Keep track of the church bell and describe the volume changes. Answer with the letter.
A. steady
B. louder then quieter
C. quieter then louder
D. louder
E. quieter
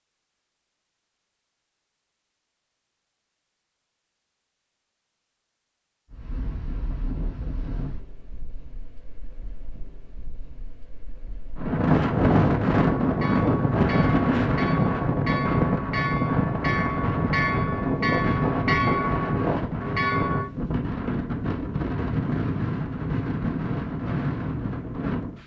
D.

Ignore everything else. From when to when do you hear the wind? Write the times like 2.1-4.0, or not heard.
6.1-25.4.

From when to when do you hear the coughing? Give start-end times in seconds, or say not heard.
not heard.